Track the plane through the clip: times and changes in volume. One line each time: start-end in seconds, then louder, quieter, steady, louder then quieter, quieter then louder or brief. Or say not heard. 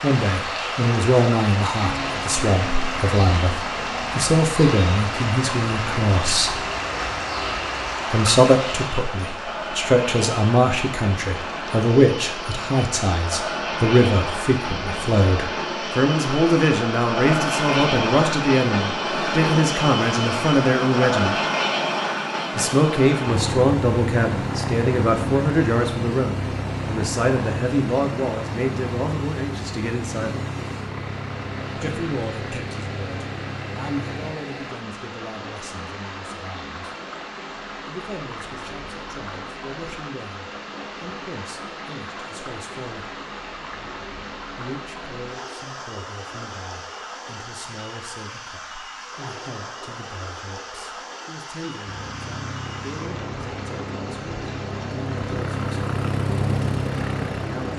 1.8-34.4 louder then quieter
51.9-57.7 louder.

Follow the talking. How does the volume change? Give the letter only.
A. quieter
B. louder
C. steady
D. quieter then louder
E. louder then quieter
A.